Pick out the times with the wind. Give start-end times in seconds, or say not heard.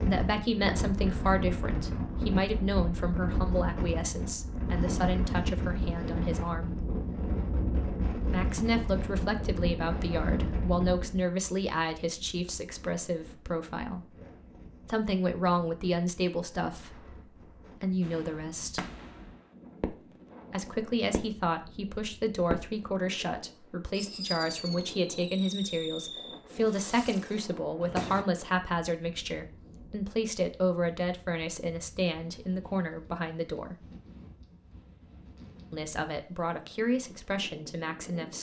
0.0-38.3.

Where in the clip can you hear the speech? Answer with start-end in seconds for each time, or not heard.
0.1-6.8, 8.3-14.1, 14.8-18.9, 20.5-33.9, 35.7-38.3.